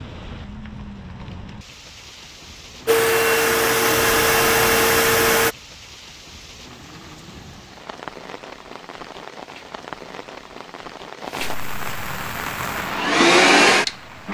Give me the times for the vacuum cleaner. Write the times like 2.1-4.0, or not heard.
2.9-5.5, 12.7-14.2.